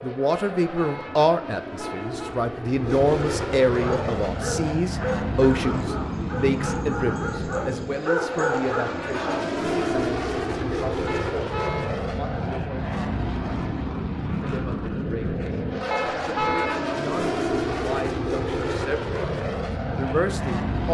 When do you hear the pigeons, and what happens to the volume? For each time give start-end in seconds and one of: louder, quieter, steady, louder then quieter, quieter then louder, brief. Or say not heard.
not heard.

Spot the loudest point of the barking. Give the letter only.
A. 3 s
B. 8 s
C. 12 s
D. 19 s
B.